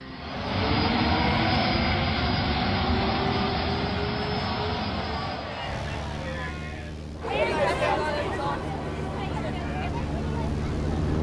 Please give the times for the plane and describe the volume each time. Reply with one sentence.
You can hear the plane from 0.0 to 11.1 s, getting quieter then louder.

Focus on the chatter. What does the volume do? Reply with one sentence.
The volume of the chatter goes up, then down.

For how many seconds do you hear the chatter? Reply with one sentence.
The chatter can be heard for 11 seconds in total.